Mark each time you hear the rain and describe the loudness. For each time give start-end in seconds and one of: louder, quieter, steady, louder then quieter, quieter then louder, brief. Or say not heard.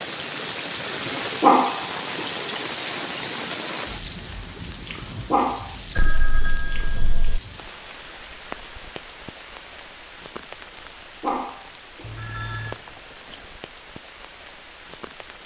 0.0-15.4 quieter.